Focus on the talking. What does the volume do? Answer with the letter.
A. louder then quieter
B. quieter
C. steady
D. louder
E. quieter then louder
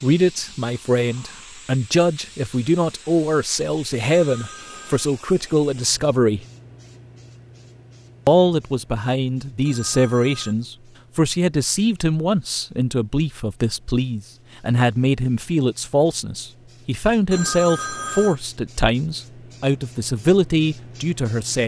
C.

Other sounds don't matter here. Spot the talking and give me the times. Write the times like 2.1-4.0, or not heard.
0.0-6.4, 8.2-21.6.